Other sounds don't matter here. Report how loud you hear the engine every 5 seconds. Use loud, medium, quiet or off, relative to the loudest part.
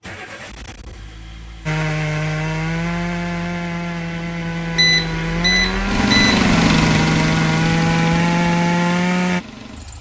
quiet, loud.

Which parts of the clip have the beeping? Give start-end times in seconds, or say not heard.
4.8-6.5.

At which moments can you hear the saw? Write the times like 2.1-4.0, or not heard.
1.6-9.4.